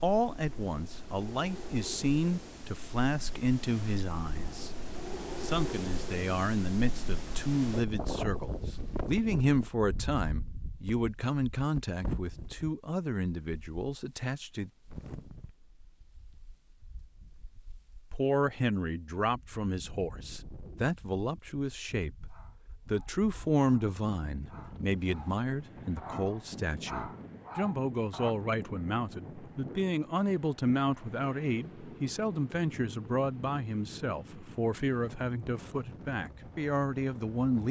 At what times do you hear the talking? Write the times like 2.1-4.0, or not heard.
0.0-4.7, 5.4-14.7, 18.1-37.6.